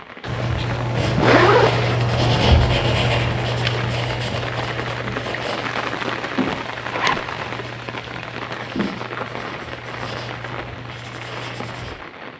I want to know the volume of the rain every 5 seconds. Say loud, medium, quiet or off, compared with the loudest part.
loud, loud, medium.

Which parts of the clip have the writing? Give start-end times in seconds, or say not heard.
0.2-11.9.